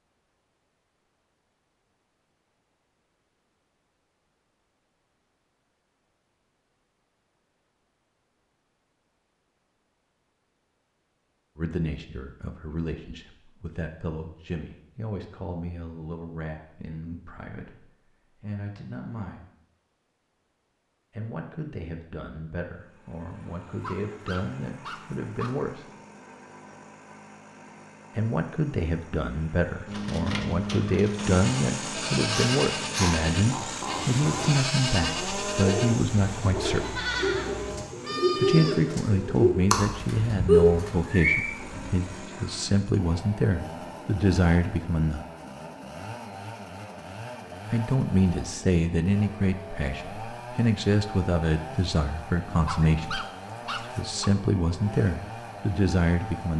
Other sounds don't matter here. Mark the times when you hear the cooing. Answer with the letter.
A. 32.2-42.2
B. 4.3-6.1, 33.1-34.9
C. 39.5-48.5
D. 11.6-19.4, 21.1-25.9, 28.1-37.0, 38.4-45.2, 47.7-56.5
A.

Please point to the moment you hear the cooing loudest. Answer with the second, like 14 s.
41 s.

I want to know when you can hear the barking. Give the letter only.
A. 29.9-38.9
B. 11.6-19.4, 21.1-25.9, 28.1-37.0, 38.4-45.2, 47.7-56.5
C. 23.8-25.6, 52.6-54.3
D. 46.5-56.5
C.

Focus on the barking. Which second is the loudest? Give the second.
53 s.